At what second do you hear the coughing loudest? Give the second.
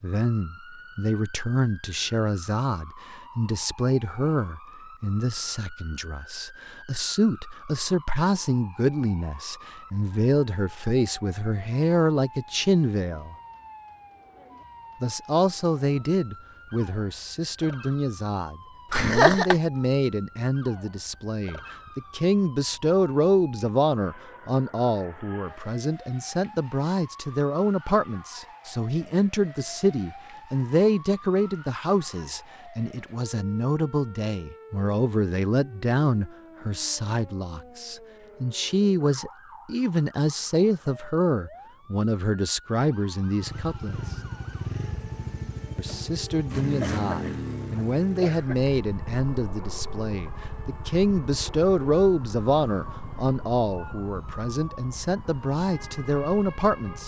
19 s.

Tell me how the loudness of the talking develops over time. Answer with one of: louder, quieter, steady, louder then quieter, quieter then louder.
steady.